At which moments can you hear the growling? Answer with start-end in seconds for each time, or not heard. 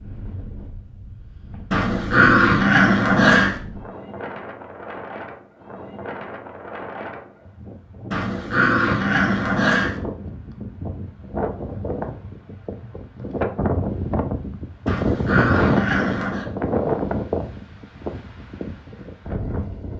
1.7-3.6, 8.1-10.0, 14.8-16.4.